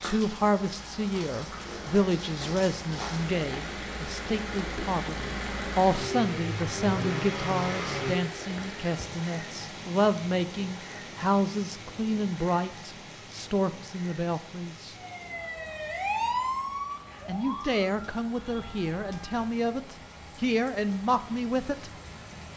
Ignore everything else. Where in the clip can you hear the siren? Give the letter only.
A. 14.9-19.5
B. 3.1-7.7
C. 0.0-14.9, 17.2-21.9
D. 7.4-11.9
A.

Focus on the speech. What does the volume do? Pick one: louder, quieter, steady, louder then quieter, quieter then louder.
steady.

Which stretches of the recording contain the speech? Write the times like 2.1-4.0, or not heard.
0.0-14.9, 17.2-21.9.